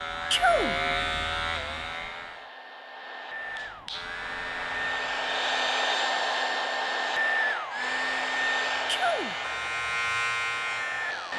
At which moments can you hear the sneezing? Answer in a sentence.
The sneezing can be heard from 0.3 to 0.8 s and from 8.8 to 9.3 s.